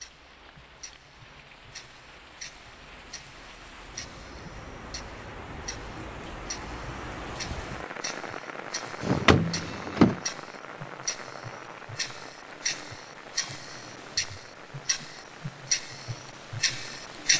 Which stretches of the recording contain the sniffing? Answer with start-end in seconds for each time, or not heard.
not heard.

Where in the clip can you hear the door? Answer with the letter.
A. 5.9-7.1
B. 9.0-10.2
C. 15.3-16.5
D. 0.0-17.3
B.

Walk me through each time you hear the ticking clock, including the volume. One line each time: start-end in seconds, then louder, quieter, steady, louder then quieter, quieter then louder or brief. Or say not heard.
0.0-17.3 louder.